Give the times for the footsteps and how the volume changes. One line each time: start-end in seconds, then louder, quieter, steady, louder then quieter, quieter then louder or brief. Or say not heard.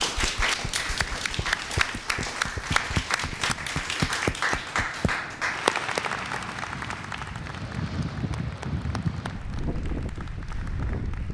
not heard.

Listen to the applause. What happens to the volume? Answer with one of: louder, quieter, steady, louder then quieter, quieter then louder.
quieter.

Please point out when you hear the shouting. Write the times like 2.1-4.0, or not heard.
not heard.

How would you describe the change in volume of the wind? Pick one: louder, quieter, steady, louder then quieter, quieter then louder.
louder.